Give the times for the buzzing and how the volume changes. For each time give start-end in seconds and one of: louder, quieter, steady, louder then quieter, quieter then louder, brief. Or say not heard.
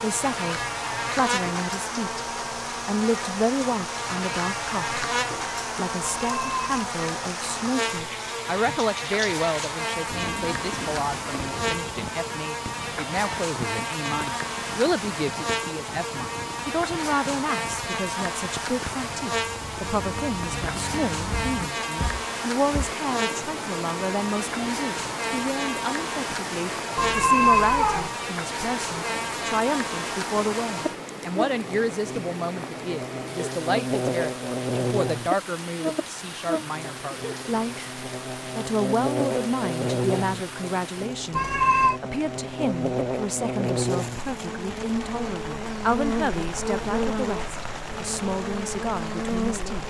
0.0-49.8 steady.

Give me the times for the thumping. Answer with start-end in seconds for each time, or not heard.
21.3-22.9.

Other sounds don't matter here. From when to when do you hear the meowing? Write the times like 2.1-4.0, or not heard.
6.0-6.8, 26.9-28.1, 41.4-42.0.